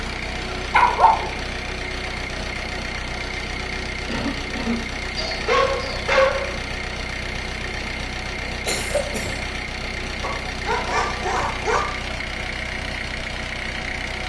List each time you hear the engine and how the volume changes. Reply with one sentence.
The engine can be heard from 0.0 to 14.2 s, at a steady volume.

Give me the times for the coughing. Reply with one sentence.
The coughing can be heard from 4.0 to 4.9 s and from 8.7 to 9.4 s.